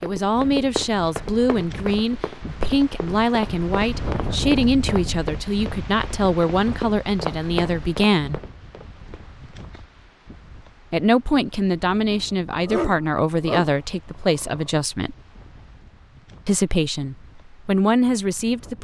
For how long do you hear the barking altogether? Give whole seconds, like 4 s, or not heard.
3 s.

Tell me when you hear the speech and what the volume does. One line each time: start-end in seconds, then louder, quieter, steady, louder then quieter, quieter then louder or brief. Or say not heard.
0.0-8.4 steady
10.9-15.2 steady
16.4-18.7 brief.